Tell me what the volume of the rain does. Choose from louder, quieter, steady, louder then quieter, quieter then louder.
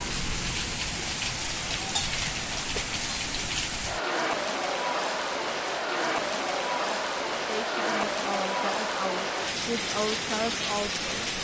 steady.